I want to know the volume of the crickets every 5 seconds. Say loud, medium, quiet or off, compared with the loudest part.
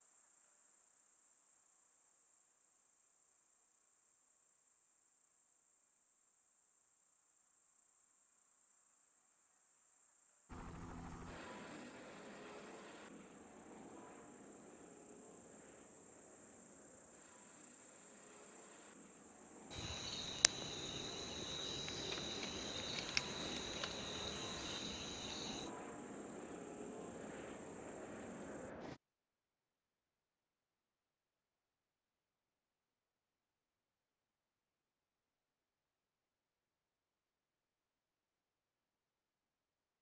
quiet, quiet, quiet, quiet, loud, medium, off, off.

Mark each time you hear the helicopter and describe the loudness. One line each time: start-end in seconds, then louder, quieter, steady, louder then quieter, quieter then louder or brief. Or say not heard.
10.4-29.0 quieter then louder.